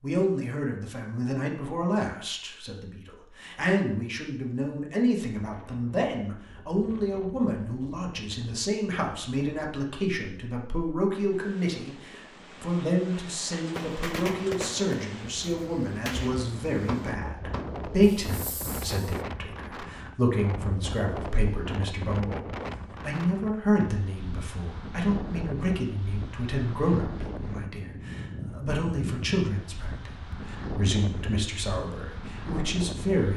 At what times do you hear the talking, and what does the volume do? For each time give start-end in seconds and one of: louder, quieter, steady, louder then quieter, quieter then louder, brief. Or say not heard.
0.0-33.3 steady.